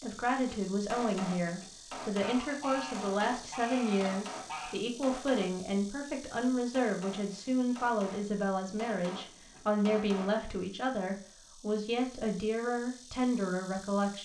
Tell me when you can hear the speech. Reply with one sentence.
The speech can be heard from 0.0 to 14.2 s.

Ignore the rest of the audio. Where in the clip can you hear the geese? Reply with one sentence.
You can hear the geese from 2.2 to 4.8 s.